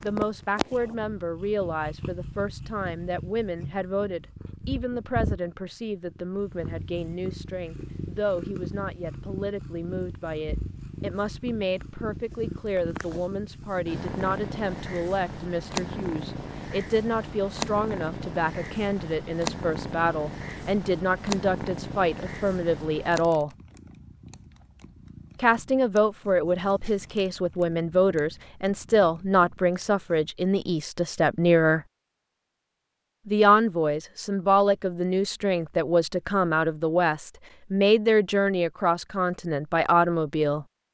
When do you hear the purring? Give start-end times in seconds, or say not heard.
0.0-30.4.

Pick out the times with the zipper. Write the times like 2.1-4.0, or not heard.
not heard.